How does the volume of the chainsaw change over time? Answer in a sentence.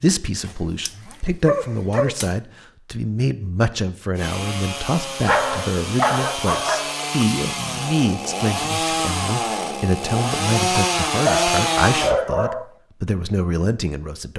The volume of the chainsaw goes up.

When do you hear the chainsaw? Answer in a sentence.
You can hear the chainsaw from 4.2 to 12.2 s.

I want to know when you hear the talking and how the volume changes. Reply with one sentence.
You can hear the talking from 0.0 to 14.3 s, at a steady volume.